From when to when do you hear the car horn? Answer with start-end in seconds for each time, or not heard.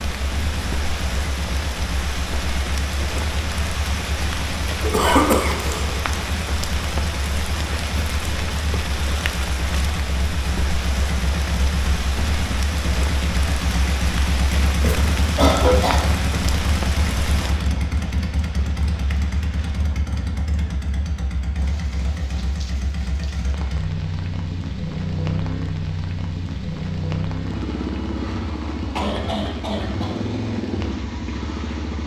not heard.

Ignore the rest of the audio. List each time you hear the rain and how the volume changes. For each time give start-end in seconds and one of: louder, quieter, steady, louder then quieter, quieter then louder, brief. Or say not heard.
0.0-32.0 quieter.